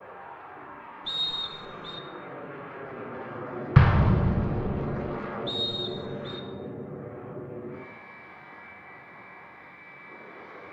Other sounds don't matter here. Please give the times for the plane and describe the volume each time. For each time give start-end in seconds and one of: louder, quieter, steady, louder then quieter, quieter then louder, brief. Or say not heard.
0.0-10.6 louder then quieter.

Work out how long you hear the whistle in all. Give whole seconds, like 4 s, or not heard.
2 s.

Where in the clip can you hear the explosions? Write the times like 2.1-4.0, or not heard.
3.8-5.1.